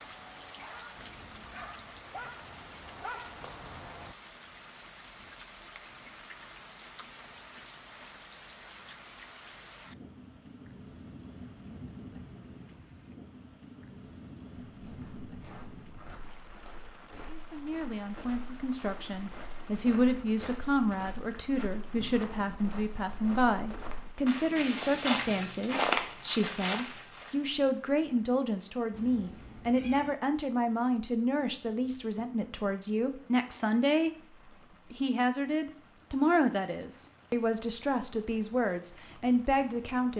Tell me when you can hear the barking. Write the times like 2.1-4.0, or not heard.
0.0-4.2.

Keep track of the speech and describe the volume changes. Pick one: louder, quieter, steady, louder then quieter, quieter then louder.
steady.